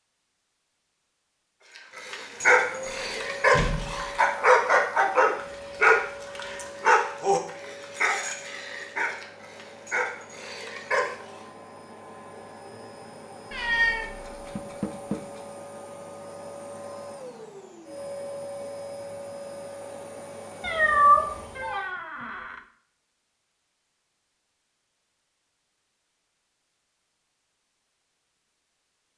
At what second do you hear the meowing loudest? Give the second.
21 s.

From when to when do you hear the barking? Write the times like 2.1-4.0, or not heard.
1.9-11.1.